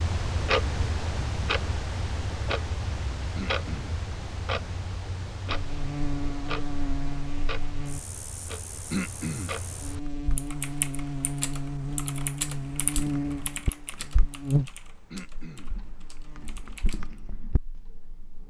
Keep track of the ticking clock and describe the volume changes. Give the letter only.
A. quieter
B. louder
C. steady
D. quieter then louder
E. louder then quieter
A.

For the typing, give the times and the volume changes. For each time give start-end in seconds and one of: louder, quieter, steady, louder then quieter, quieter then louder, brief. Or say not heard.
10.3-17.2 quieter.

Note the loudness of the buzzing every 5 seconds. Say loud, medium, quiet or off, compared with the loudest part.
off, medium, loud, quiet.